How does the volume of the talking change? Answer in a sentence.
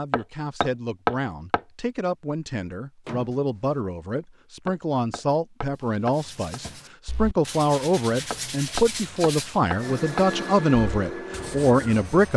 The loudness of the talking goes up.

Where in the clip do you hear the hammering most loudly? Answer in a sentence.
The volume of the hammering peaks at 1 second.